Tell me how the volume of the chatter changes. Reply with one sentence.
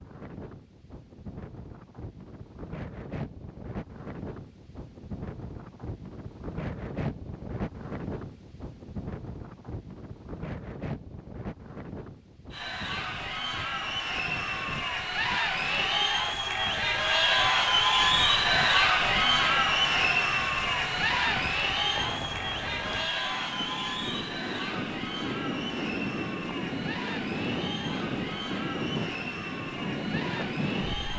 The volume of the chatter goes up, then down.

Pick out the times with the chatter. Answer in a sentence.
You can hear the chatter from 12.5 to 31.1 s.